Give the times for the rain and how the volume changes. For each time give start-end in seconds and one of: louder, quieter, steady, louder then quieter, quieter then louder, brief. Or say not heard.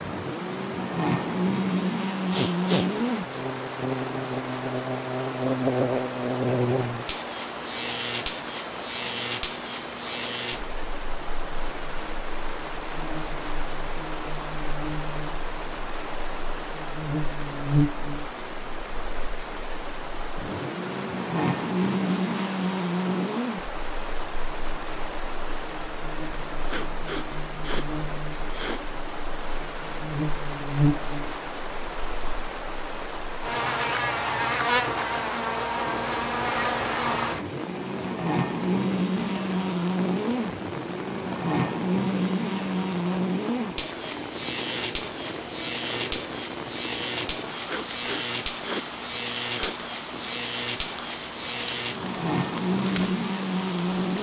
0.0-54.1 steady.